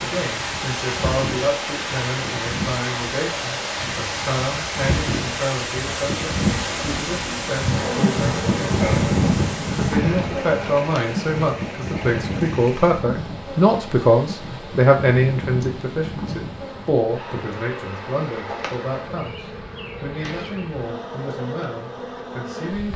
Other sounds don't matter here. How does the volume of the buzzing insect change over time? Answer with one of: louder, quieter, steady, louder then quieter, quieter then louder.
louder then quieter.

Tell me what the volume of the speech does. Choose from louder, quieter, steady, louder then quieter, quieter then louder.
louder then quieter.